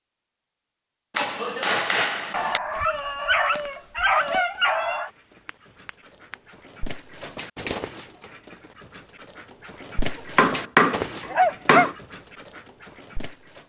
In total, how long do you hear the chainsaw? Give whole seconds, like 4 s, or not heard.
not heard.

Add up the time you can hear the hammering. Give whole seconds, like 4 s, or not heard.
4 s.